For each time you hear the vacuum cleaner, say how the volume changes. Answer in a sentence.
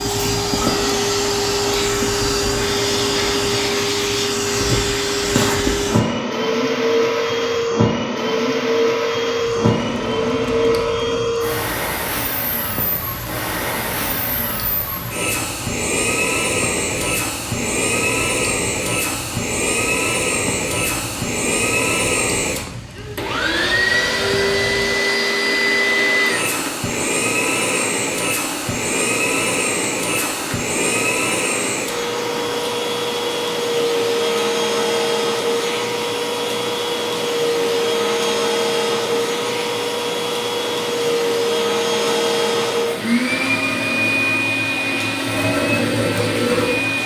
You can hear the vacuum cleaner from 0.0 to 47.0 s, at a steady volume.